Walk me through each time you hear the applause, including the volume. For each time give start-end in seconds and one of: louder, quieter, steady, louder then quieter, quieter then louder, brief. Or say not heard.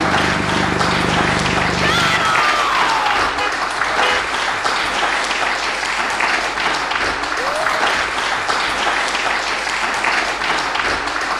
0.0-11.3 steady.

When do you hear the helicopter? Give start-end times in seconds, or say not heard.
0.0-2.5.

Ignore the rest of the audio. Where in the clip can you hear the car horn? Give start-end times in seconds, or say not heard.
3.4-4.3.